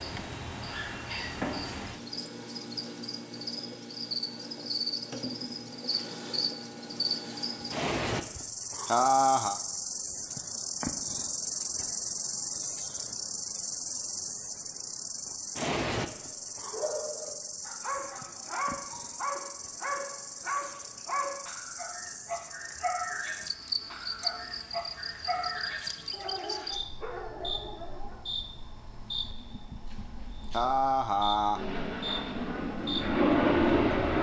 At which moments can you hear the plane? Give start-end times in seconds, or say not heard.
31.5-34.1.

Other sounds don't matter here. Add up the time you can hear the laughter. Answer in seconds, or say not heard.
3 s.